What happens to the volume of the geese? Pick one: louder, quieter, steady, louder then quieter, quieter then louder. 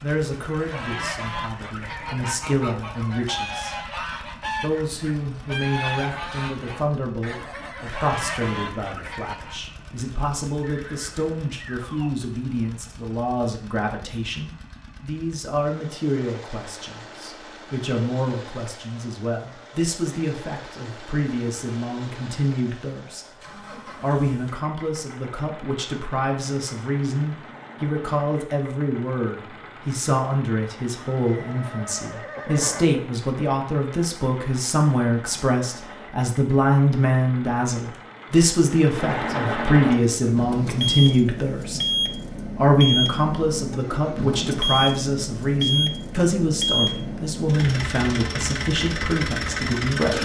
steady.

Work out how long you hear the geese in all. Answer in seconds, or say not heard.
9 s.